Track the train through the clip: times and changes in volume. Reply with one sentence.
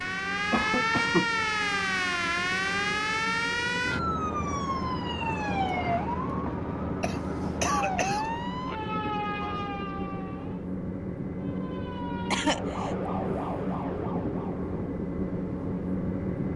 The train can be heard from 0.0 to 16.5 s, getting louder.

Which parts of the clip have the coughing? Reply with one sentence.
The coughing can be heard from 0.5 to 1.3 s, from 7.0 to 8.2 s and from 12.3 to 12.9 s.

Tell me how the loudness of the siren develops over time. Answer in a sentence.
The volume of the siren goes down.